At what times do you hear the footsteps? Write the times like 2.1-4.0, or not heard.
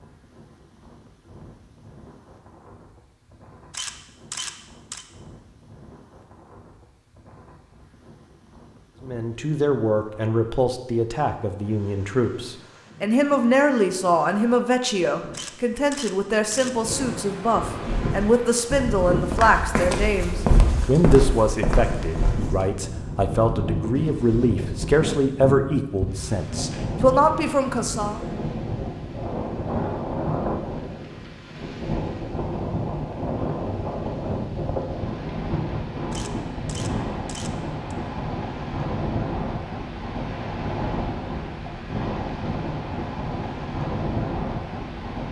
17.8-22.7.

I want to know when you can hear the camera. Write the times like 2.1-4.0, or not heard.
3.7-5.0, 15.3-16.7, 36.1-38.0.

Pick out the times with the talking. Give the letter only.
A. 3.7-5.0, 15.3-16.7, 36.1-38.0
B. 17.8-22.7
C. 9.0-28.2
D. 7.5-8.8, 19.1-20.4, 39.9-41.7
C.